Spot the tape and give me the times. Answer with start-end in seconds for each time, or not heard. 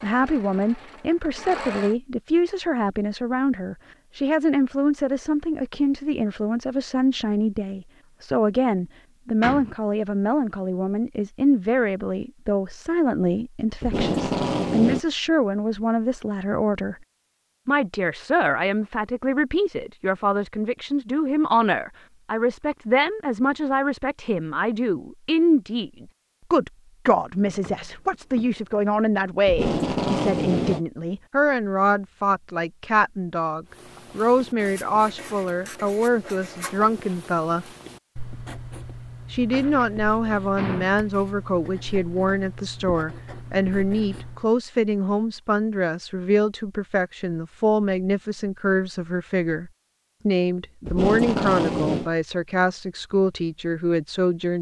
13.8-15.0, 29.4-30.8, 50.9-52.1.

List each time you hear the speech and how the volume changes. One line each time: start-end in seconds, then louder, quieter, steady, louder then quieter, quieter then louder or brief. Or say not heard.
0.0-16.9 steady
17.6-37.6 steady
39.3-54.5 steady.